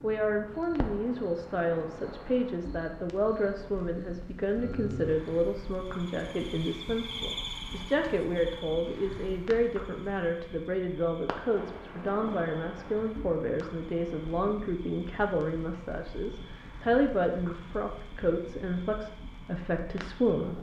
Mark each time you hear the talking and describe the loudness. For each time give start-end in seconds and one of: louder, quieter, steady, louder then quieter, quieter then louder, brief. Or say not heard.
0.0-20.5 steady.